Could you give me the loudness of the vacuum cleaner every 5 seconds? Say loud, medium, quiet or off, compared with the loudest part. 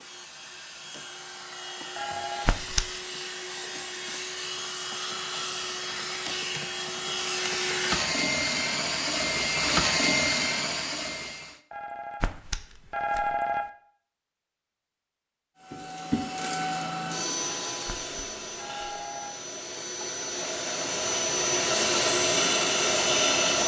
quiet, loud, loud, medium, loud.